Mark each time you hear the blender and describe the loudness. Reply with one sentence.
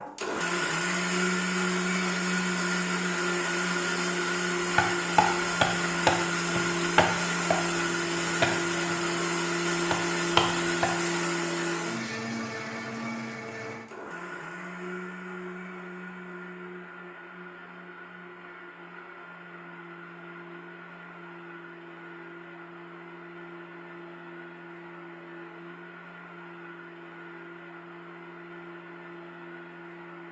The blender can be heard from 0.0 to 30.2 s, getting quieter.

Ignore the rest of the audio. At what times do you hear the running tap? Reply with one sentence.
You can't hear the running tap here.